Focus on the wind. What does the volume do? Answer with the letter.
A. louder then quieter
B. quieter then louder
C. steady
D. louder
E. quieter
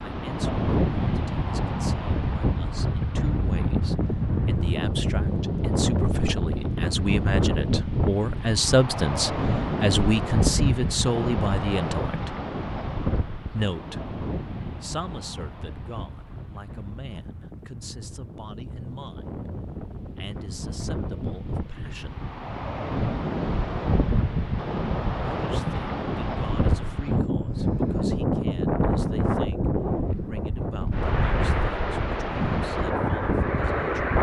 B.